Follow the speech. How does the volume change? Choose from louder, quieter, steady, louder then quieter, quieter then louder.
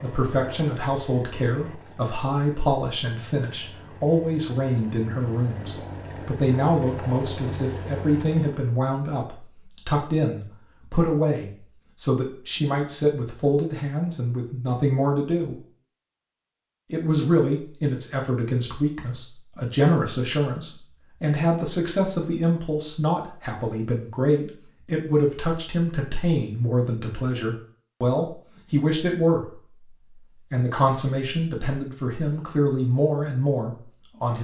steady.